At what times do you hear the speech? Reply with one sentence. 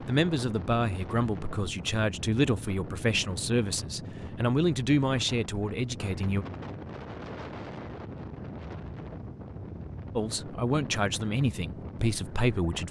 The speech can be heard from 0.0 to 6.5 s and from 10.2 to 12.8 s.